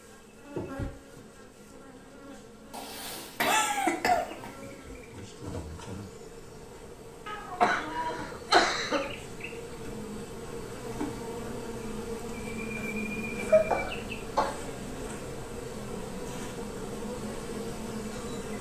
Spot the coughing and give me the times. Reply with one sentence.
The coughing can be heard from 2.7 to 4.5 s, from 7.2 to 9.1 s and from 13.4 to 14.6 s.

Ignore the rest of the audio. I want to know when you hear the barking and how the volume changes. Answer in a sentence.
The barking can't be heard in this clip.